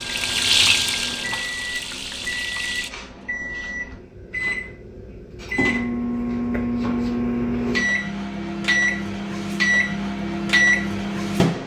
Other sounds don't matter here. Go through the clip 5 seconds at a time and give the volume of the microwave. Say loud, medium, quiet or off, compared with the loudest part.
medium, loud, loud.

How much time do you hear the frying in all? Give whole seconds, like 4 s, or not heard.
3 s.